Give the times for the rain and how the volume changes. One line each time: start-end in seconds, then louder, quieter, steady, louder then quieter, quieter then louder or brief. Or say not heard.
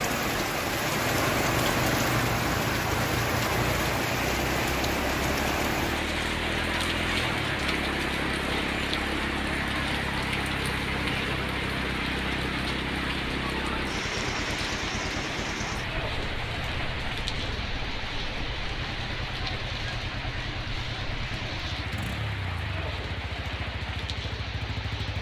0.0-25.1 quieter.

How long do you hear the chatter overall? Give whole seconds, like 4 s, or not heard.
not heard.